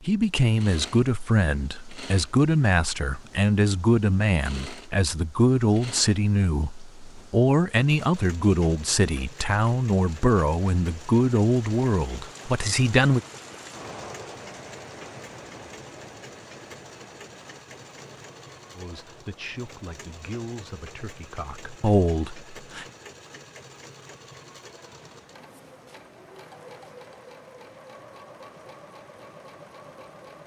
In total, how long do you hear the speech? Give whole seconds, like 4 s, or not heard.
17 s.